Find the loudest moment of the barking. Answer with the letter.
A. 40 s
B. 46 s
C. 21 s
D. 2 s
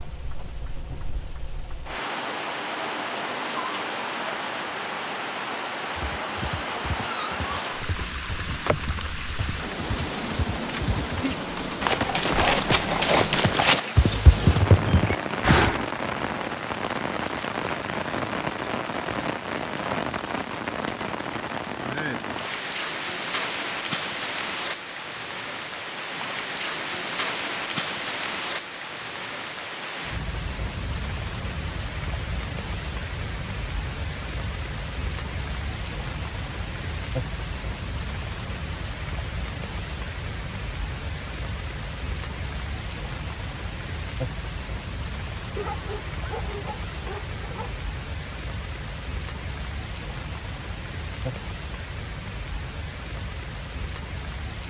B.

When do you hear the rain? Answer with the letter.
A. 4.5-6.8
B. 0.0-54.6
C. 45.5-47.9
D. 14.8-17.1
B.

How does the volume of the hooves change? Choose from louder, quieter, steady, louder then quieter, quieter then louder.
louder.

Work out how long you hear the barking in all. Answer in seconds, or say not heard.
2 s.